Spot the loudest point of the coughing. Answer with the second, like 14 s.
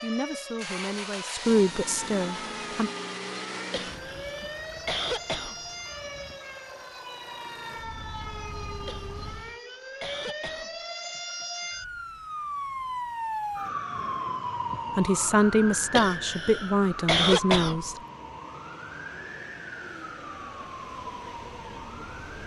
17 s.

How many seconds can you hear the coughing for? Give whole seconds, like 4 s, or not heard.
6 s.